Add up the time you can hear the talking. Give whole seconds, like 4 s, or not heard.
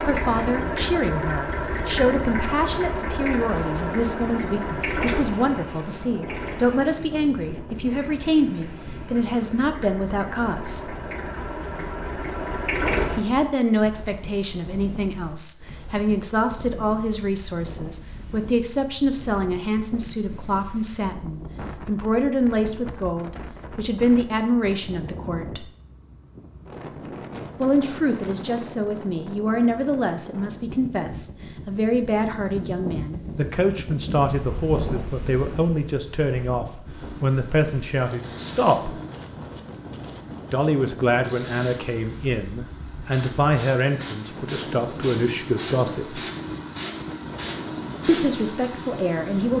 42 s.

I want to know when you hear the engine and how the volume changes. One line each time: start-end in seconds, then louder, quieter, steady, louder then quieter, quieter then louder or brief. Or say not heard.
0.0-13.2 quieter then louder
36.9-49.5 louder.